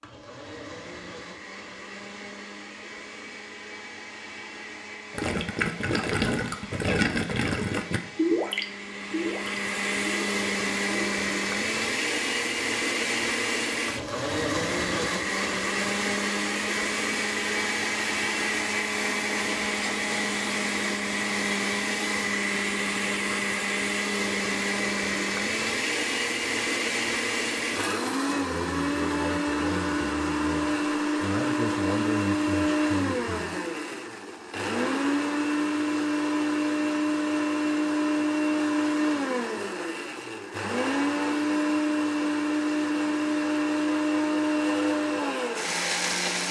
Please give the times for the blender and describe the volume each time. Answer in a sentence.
You can hear the blender from 0.0 to 46.4 s, getting louder.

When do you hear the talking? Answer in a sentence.
The talking can be heard from 28.4 to 33.6 s.